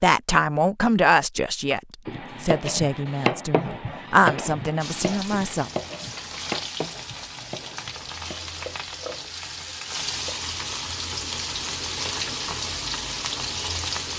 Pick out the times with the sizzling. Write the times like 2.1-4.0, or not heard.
4.8-14.1.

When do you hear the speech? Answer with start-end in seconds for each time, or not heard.
0.0-5.7.